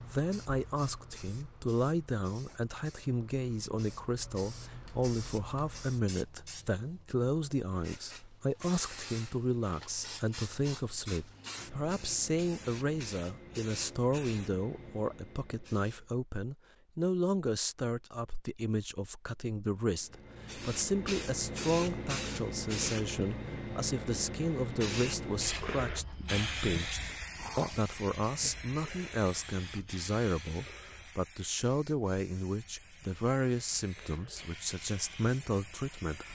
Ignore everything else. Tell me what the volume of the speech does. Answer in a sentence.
The volume of the speech stays about the same.